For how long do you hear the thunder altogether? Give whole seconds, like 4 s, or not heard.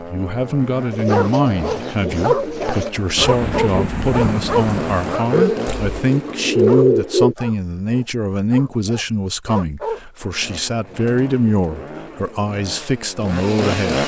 2 s.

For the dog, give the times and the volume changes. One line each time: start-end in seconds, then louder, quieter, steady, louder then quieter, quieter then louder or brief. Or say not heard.
0.5-10.0 quieter.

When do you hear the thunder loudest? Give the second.
4 s.